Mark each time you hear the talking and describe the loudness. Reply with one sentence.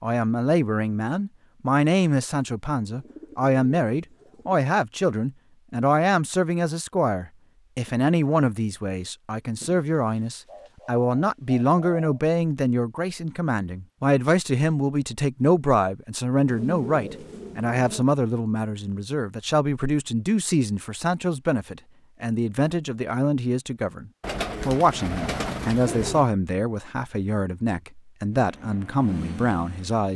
You can hear the talking from 0.0 to 30.1 s, at a steady volume.